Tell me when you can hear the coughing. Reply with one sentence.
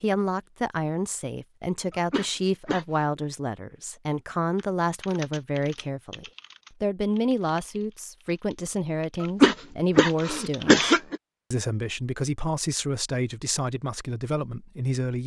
You can hear the coughing from 1.9 to 3.0 s and from 9.2 to 11.2 s.